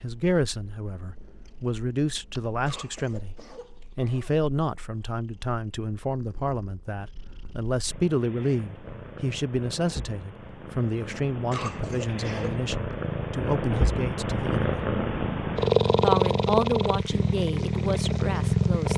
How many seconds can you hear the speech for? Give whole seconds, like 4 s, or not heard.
18 s.